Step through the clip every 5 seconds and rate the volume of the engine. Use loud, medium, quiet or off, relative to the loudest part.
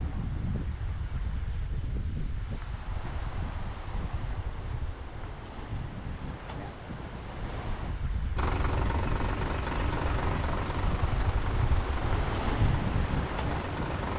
off, loud, loud.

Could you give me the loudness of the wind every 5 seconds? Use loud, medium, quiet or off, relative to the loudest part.
medium, medium, loud.